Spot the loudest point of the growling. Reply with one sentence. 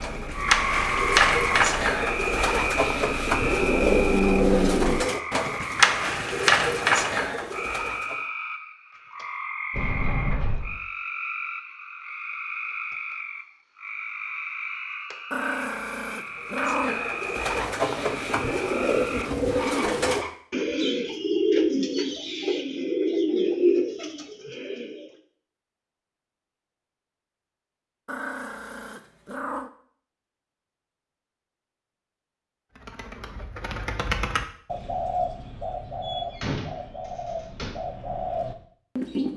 The loudest moment of the growling is at 4 seconds.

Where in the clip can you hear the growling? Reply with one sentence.
You can hear the growling from 3.5 to 5.2 s, from 15.3 to 17.1 s and from 28.1 to 29.7 s.